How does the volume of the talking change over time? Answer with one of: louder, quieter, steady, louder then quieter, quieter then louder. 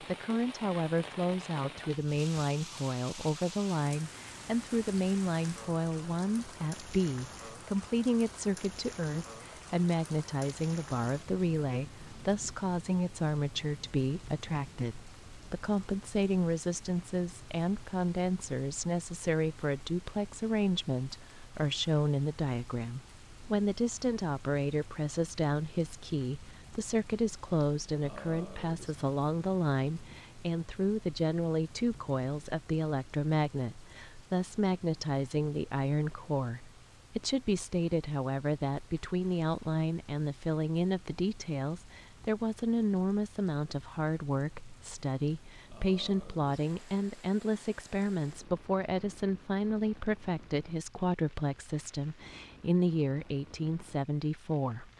steady.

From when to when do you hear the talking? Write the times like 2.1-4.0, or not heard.
0.0-54.9.